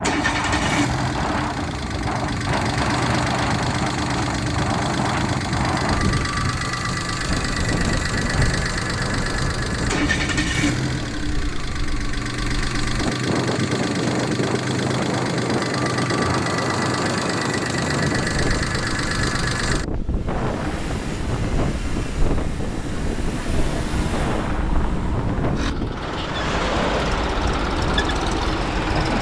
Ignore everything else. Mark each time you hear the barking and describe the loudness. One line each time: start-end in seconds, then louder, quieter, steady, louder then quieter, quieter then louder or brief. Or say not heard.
not heard.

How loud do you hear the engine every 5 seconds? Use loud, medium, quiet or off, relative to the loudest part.
loud, loud, loud, loud, medium, loud.